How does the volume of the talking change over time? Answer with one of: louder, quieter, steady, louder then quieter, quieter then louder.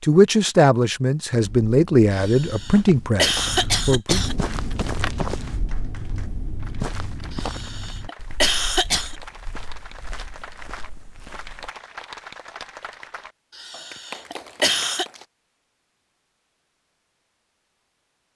quieter.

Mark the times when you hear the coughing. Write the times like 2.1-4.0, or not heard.
2.1-4.3, 7.3-9.2, 13.6-15.1.